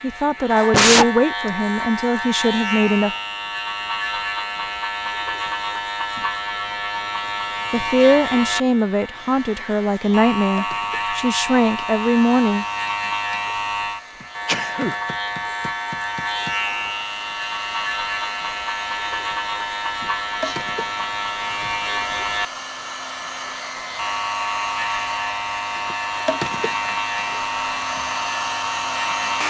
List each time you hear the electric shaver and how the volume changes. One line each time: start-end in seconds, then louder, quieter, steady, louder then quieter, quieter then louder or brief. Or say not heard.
0.0-29.4 steady.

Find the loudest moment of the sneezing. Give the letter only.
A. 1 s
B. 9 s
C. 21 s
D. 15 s
A.